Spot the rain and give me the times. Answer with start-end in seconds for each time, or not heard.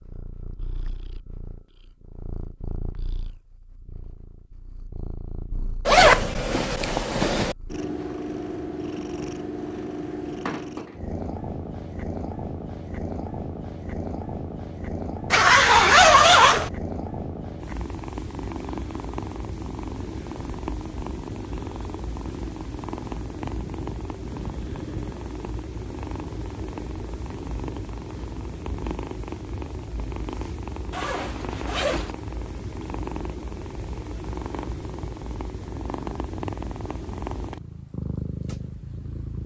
not heard.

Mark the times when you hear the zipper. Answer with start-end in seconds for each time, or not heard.
5.8-7.5, 15.3-16.7, 30.9-32.1.